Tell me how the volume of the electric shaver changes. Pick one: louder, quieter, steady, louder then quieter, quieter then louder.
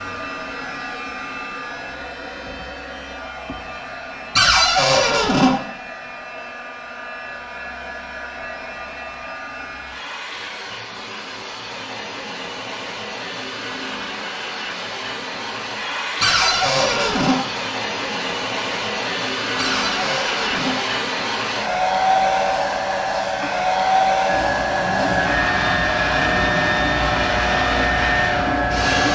steady.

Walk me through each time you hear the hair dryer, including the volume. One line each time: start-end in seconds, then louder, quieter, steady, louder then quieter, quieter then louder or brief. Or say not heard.
0.0-29.1 louder.